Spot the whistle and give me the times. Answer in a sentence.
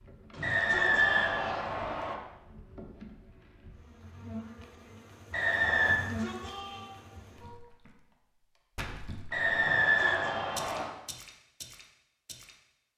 The whistle can be heard from 0.4 to 2.1 s, from 5.3 to 6.0 s and from 9.3 to 10.9 s.